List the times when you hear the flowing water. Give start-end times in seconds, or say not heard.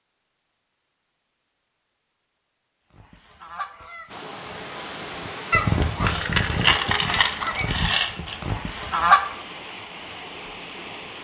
4.0-11.1.